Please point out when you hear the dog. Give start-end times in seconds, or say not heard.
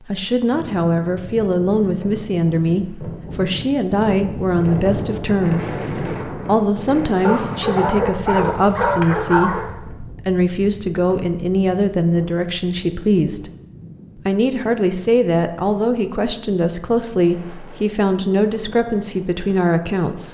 7.2-9.7.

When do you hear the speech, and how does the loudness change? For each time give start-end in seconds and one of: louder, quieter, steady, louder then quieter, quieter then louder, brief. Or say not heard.
0.1-13.5 steady
14.2-20.2 steady.